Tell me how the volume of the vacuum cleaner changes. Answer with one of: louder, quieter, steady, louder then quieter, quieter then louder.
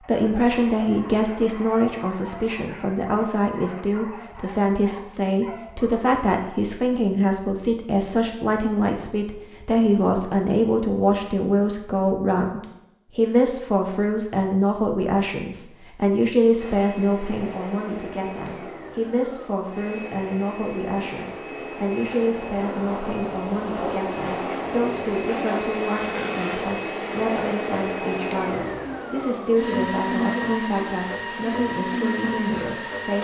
louder.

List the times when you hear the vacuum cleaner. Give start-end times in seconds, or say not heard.
16.6-33.1.